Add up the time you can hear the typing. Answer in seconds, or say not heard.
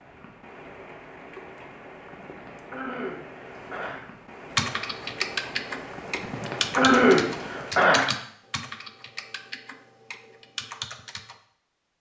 7 s.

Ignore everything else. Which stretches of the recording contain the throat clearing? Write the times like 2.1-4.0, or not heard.
2.2-4.0, 6.2-8.1.